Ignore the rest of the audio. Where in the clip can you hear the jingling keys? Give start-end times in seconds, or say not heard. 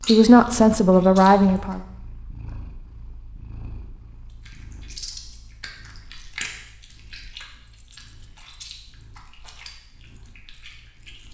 7.7-8.6.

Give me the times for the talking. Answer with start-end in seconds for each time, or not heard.
0.1-1.8.